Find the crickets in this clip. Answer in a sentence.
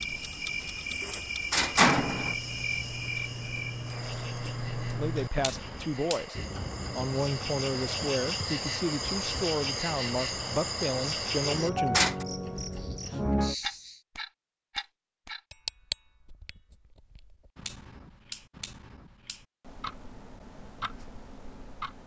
The crickets can be heard from 0.0 to 14.0 s.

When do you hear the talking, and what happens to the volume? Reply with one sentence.
You can hear the talking briefly from 4.9 to 6.3 s; and from 7.0 to 12.0 s, at a steady volume.